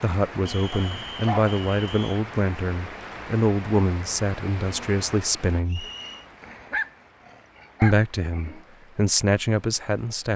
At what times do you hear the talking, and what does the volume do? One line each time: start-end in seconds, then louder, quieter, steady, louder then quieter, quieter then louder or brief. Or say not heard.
0.0-5.8 steady
7.8-10.3 brief.